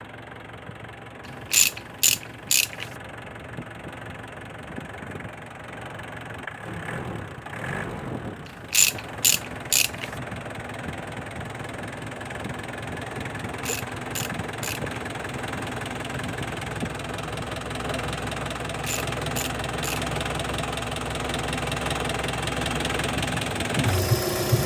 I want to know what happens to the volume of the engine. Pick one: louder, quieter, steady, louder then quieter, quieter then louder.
louder.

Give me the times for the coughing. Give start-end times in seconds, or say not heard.
not heard.